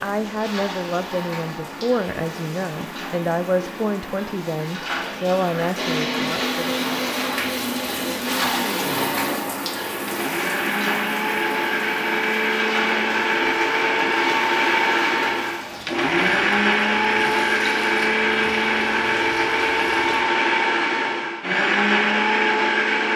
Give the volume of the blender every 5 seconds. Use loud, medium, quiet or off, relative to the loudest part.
off, medium, loud, loud, loud.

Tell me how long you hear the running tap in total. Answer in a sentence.
The running tap can be heard for 20 seconds in total.